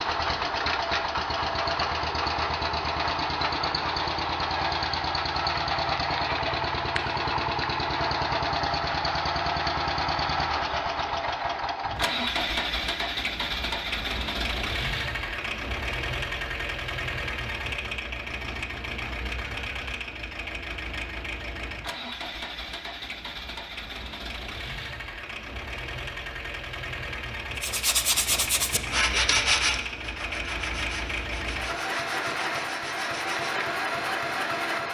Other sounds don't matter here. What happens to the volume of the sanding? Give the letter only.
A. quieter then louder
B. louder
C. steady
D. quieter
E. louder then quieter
D.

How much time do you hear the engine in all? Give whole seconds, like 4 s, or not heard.
35 s.